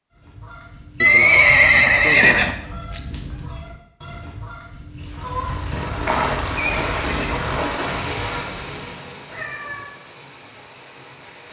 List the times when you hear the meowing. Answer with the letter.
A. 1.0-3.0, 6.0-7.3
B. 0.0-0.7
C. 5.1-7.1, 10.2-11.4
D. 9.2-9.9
D.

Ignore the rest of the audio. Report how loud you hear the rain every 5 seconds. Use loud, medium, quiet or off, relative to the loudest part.
off, loud, quiet.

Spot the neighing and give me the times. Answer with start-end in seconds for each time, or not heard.
1.0-3.0, 6.0-7.3.